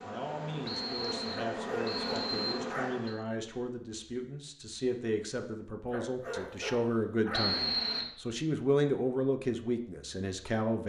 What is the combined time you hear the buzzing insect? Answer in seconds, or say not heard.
3 s.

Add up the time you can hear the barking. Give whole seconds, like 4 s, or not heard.
3 s.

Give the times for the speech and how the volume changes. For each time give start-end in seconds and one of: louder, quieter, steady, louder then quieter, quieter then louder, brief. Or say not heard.
0.0-10.8 louder.